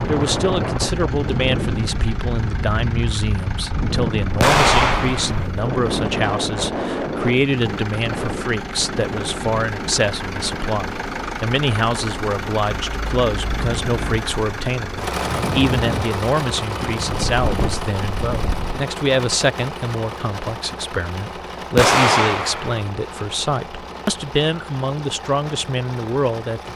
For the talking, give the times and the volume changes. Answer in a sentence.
The talking can be heard from 0.1 to 26.7 s, at a steady volume.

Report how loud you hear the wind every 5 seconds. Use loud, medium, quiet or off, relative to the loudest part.
loud, loud, medium, loud, off, off.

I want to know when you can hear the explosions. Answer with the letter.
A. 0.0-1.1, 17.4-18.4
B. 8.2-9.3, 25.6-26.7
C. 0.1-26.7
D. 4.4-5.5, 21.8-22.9
D.